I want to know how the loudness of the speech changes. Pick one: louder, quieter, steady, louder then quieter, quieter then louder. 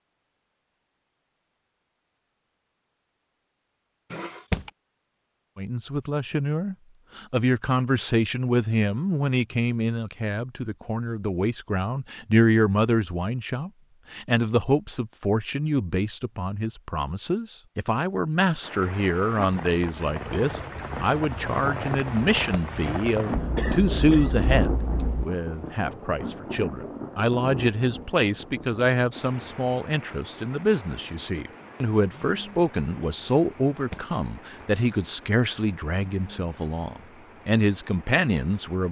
steady.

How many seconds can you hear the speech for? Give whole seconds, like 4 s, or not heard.
33 s.